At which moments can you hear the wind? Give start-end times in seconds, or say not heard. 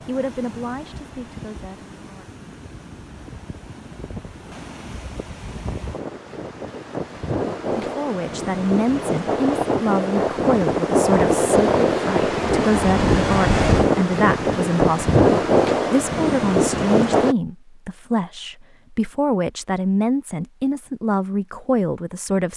0.0-17.4.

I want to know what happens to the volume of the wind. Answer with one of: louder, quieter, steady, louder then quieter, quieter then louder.
louder.